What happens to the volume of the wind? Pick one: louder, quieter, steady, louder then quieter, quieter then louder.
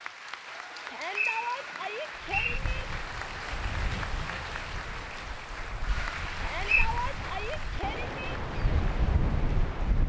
louder.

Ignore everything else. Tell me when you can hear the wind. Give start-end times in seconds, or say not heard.
2.1-10.0.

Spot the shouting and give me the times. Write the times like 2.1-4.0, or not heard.
0.8-2.9, 6.3-8.4.